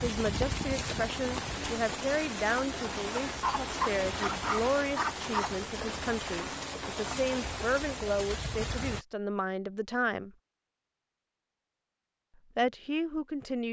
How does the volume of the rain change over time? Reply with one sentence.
The volume of the rain stays about the same.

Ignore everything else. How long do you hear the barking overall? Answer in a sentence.
The barking can be heard for 2 seconds in total.